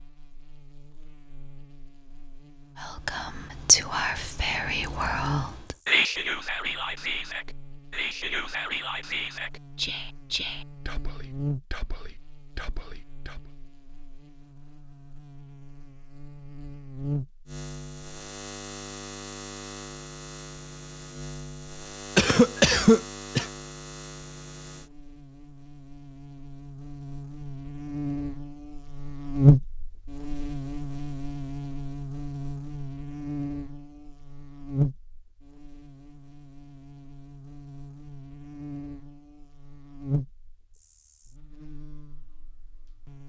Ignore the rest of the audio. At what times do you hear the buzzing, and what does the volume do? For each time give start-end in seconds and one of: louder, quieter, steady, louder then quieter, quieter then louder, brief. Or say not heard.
0.0-43.2 louder then quieter.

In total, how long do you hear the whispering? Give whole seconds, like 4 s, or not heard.
11 s.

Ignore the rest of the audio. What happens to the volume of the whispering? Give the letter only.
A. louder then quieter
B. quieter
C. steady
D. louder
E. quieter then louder
B.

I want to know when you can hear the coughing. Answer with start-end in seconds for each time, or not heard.
22.1-23.4.